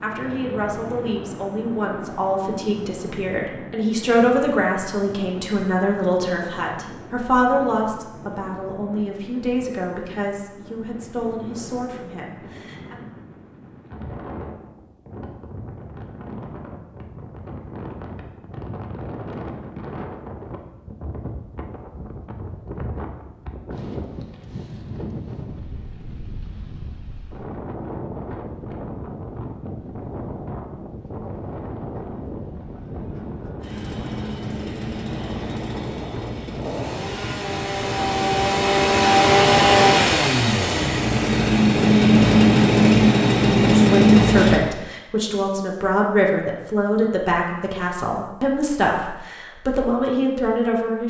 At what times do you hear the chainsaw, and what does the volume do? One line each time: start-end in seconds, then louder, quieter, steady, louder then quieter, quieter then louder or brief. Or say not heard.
33.6-44.6 louder.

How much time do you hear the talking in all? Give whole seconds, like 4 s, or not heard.
20 s.